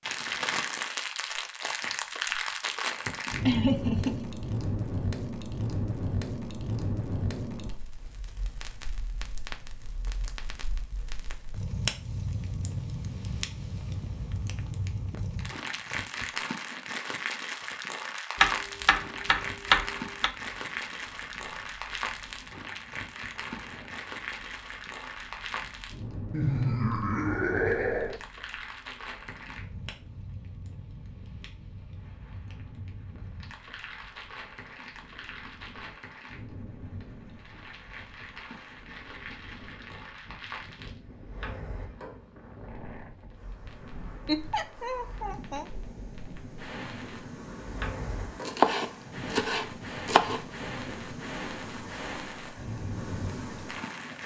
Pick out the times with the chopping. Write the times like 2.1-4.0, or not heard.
18.4-20.3, 48.5-50.4.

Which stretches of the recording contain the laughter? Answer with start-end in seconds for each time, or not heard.
3.5-4.2, 26.3-28.2, 44.2-45.6.